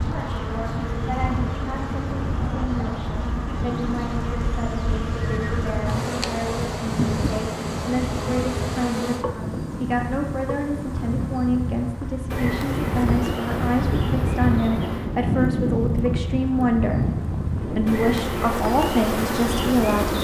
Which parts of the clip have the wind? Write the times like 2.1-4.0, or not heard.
0.0-20.1.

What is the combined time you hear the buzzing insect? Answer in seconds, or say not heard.
20 s.